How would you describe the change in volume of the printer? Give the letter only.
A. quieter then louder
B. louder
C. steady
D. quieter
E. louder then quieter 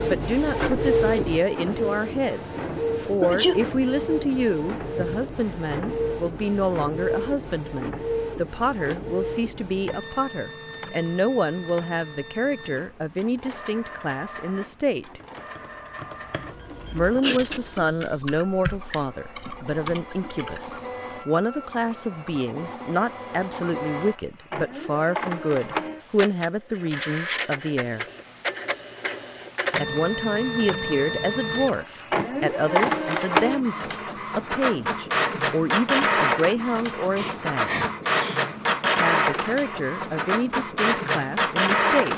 A.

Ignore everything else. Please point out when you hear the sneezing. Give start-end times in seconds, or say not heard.
3.2-3.6, 17.2-17.6, 37.1-38.4.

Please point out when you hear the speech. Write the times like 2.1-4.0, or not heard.
0.0-15.2, 16.9-28.1, 29.8-37.9, 39.0-42.1.